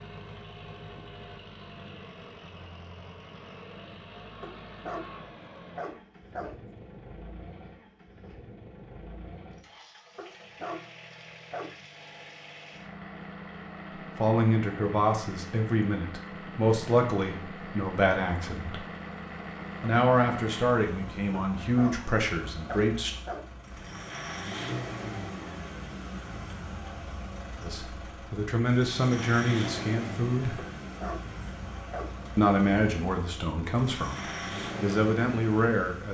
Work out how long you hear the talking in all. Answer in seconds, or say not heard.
15 s.